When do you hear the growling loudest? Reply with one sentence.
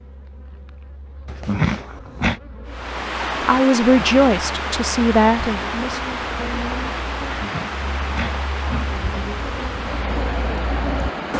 The volume of the growling peaks at 2 seconds.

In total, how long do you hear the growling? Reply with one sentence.
You can hear the growling for 3 seconds altogether.